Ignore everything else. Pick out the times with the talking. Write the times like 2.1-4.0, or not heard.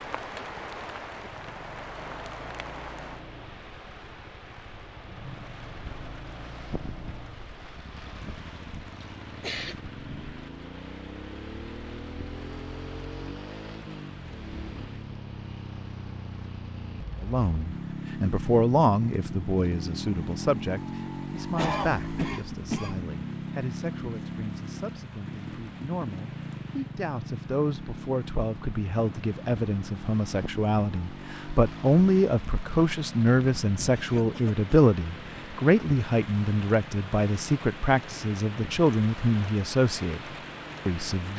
17.2-40.2, 40.9-41.3.